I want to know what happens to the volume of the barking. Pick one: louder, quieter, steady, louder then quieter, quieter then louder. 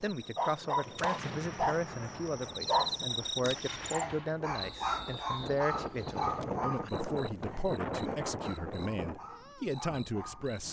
quieter.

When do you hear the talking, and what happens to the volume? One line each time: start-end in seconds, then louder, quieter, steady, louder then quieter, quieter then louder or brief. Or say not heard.
0.0-10.6 steady.